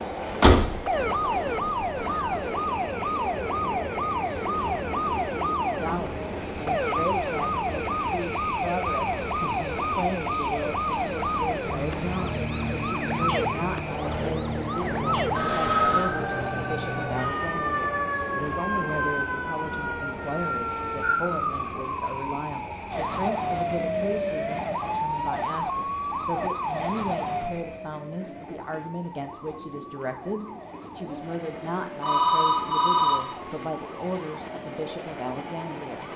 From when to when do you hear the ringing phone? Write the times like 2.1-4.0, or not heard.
15.3-16.1, 32.0-33.1.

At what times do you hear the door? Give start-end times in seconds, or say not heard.
0.3-0.9.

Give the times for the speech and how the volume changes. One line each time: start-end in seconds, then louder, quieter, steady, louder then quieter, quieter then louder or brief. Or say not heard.
5.3-36.1 steady.